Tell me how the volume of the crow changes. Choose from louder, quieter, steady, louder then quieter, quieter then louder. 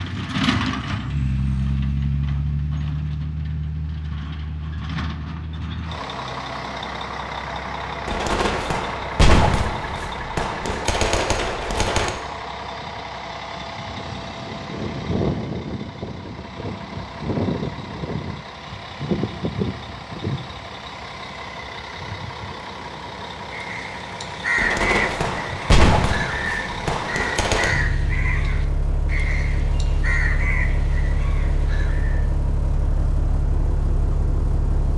quieter.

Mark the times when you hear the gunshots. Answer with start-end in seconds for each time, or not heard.
8.1-12.1, 24.6-27.7.